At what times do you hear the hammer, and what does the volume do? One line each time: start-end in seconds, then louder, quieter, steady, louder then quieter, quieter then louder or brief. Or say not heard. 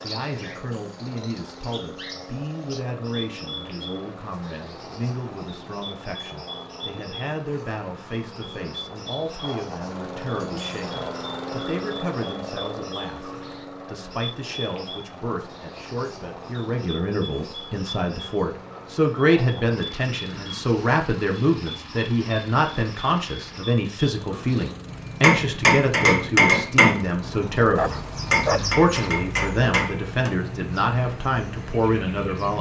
25.2-30.3 quieter then louder.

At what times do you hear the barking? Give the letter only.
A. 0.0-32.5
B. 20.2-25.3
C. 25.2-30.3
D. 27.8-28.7
D.